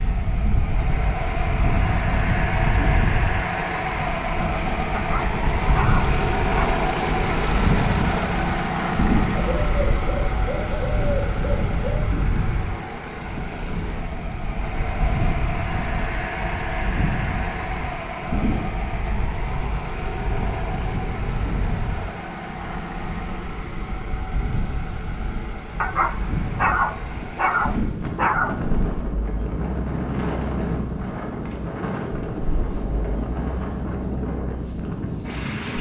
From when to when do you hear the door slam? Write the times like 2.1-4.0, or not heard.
not heard.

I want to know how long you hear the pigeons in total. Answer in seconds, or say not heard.
3 s.